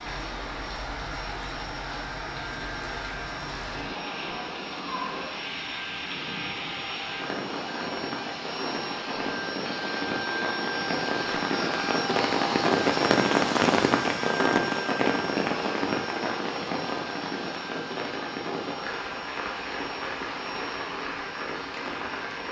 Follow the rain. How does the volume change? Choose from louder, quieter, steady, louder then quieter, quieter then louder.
louder then quieter.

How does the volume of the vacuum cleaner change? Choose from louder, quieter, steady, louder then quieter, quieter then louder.
louder then quieter.